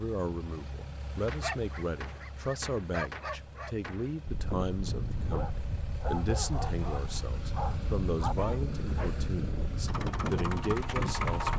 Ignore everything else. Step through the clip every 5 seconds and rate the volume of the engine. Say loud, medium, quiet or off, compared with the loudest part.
quiet, medium, loud.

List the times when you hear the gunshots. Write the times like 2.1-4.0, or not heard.
1.2-4.2.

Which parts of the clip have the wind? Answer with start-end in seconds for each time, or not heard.
4.2-11.5.